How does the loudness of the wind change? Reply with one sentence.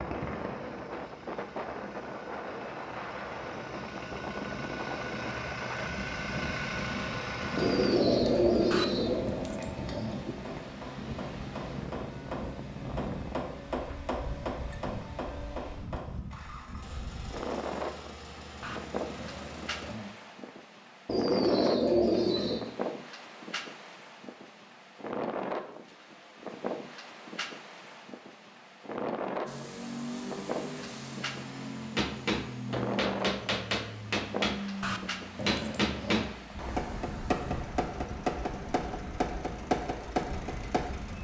The volume of the wind stays about the same.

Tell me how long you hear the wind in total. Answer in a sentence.
You can hear the wind for 41 seconds altogether.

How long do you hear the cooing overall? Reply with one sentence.
The cooing can be heard for 3 seconds in total.